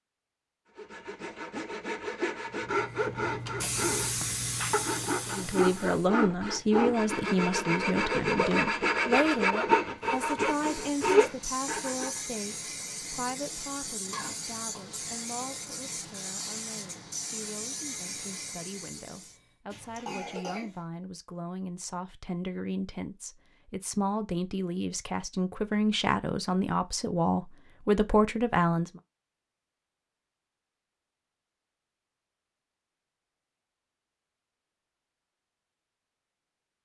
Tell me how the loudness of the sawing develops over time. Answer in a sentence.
The volume of the sawing goes up.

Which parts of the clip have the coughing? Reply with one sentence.
The coughing can be heard from 14.1 to 15.0 s and from 19.7 to 20.8 s.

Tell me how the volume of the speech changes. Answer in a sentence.
The volume of the speech goes down, then up.